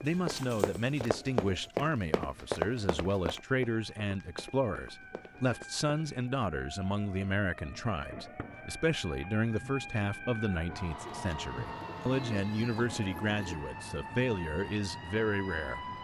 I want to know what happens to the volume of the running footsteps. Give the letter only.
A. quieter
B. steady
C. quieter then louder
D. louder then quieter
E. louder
A.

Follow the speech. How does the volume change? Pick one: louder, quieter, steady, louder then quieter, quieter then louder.
steady.